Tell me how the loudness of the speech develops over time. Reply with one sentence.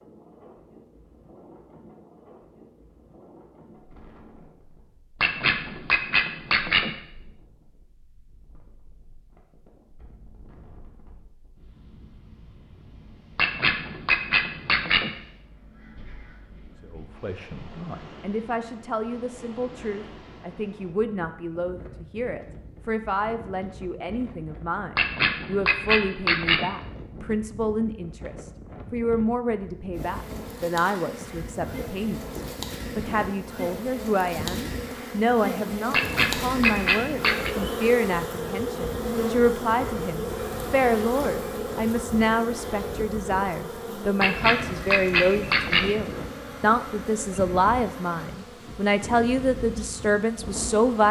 The volume of the speech goes up.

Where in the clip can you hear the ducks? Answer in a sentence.
The ducks can be heard from 5.2 to 6.9 s, from 13.3 to 15.1 s, from 24.9 to 26.7 s, from 35.9 to 37.5 s and from 44.2 to 46.0 s.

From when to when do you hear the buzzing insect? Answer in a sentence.
You can hear the buzzing insect from 29.9 to 51.0 s.